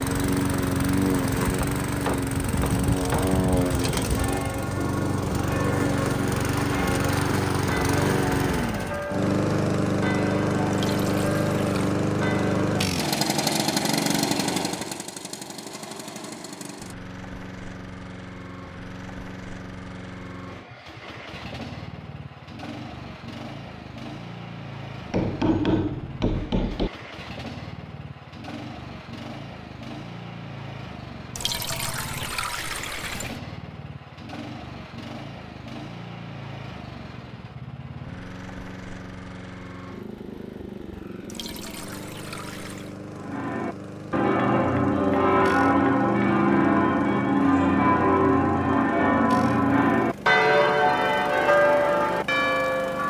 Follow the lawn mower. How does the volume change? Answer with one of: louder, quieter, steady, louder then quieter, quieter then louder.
quieter.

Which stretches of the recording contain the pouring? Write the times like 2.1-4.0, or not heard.
10.7-12.0, 31.4-33.4, 41.2-43.0.